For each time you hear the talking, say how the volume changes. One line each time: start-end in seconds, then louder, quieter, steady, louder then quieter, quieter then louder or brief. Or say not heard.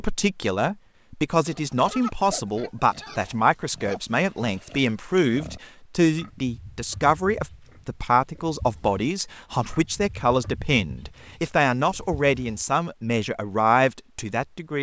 0.0-14.7 steady.